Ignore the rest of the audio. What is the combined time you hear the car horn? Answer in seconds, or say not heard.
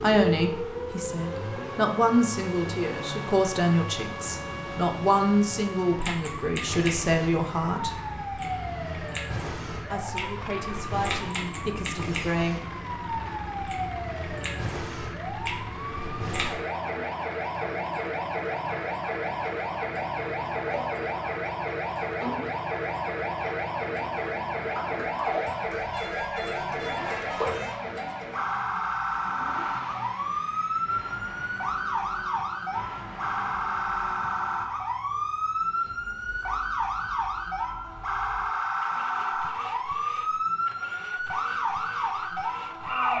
2 s.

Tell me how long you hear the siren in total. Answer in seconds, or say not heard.
43 s.